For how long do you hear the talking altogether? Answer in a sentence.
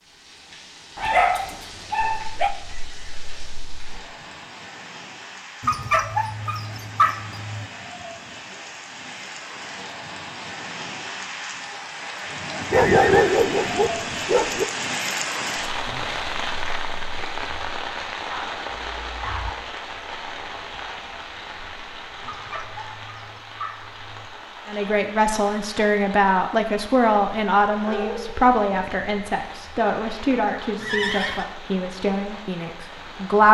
You can hear the talking for 9 seconds altogether.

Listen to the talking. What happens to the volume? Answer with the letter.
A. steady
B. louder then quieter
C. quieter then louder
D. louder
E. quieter
E.